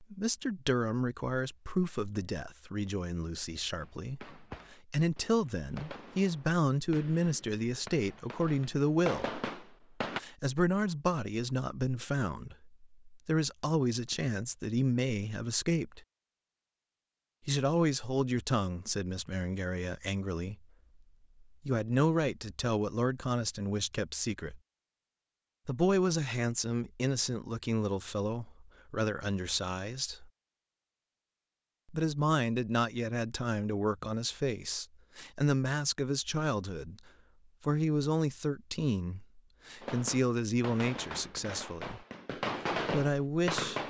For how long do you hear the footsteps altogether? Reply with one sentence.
The footsteps can't be heard in this clip.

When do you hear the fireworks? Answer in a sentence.
The fireworks can be heard from 3.8 to 10.2 s and from 39.8 to 43.8 s.